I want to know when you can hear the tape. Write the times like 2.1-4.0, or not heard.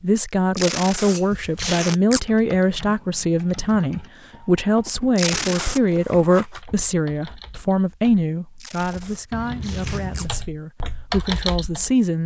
0.5-2.2, 5.2-5.8, 8.6-10.3.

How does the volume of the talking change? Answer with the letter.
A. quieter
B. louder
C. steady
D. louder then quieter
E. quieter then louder
A.